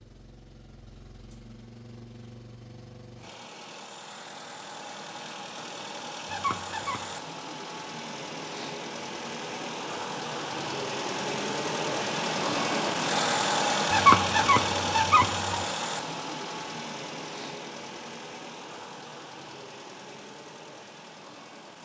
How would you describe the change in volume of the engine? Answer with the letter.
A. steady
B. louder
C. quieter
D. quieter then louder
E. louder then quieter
E.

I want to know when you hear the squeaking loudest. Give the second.
14 s.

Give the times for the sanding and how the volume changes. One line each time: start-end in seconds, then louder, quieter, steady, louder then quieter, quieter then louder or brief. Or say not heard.
not heard.